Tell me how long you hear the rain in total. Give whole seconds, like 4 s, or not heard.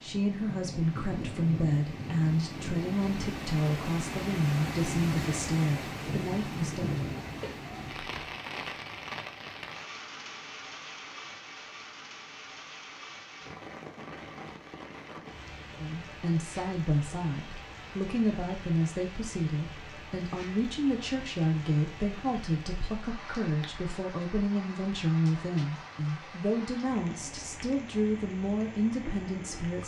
30 s.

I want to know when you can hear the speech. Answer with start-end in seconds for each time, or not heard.
0.0-7.0, 15.8-29.8.